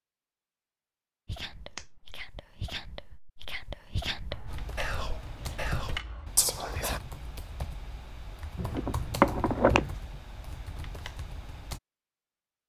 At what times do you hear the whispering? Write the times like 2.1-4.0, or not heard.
1.2-7.0.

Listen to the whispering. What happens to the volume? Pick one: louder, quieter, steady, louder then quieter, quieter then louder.
louder.